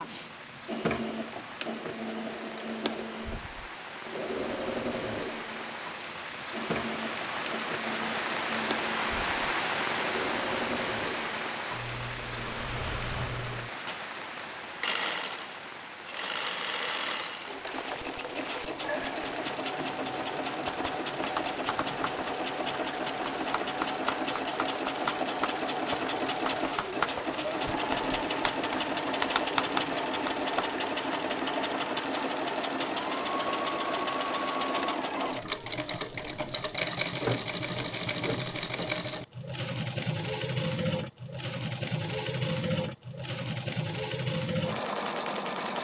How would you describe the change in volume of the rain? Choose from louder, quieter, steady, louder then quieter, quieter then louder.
louder then quieter.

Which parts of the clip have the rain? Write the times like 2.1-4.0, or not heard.
0.0-34.8.